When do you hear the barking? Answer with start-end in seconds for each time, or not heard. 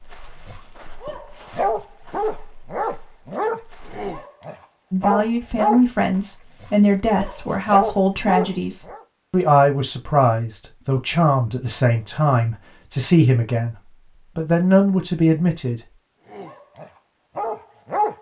0.4-9.1, 16.3-18.1.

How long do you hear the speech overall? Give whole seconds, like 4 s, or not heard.
11 s.